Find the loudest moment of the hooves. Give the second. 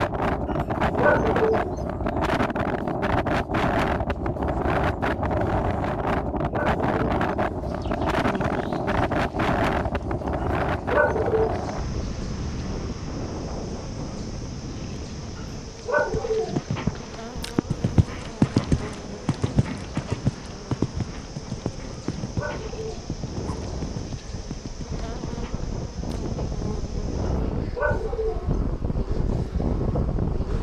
19 s.